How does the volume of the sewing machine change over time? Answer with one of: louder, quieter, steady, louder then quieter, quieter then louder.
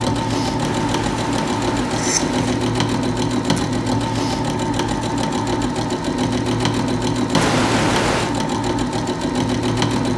steady.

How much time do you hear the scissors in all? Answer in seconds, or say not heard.
3 s.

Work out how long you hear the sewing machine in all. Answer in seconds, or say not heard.
10 s.